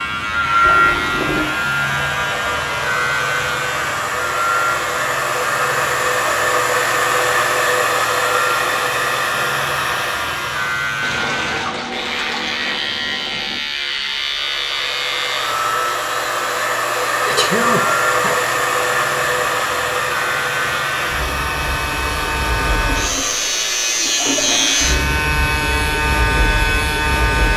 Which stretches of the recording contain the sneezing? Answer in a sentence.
The sneezing can be heard from 17.2 to 18.4 s.